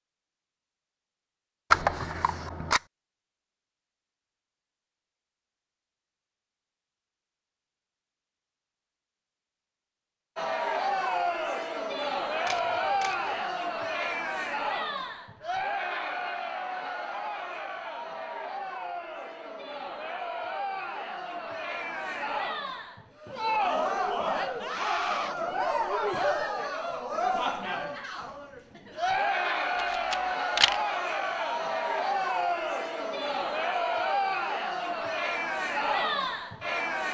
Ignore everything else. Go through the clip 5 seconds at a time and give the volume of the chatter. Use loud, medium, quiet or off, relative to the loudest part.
off, off, loud, medium, loud, loud, loud, loud.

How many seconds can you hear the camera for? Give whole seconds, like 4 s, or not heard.
3 s.